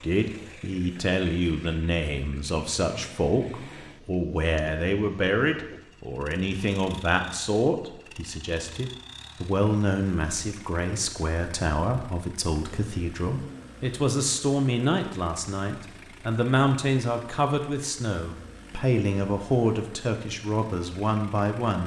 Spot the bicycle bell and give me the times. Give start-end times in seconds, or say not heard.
not heard.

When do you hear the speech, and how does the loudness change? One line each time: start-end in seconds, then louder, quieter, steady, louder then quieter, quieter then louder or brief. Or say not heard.
0.0-21.8 steady.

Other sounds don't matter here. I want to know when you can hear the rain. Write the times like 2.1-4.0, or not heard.
not heard.